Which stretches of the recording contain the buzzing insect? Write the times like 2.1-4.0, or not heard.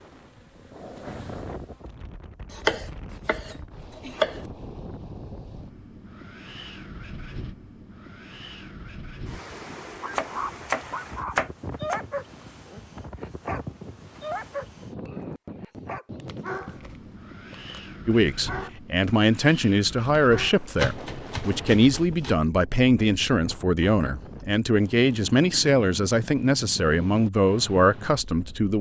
0.0-1.9.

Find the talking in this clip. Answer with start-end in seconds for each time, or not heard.
18.1-28.7.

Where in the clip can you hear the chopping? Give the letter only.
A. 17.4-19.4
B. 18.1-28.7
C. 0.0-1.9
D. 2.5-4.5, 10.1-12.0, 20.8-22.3
D.